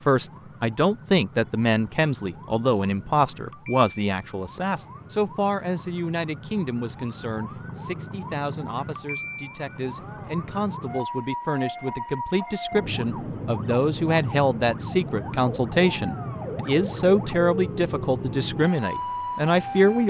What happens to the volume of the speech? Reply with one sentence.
The loudness of the speech goes down, then up.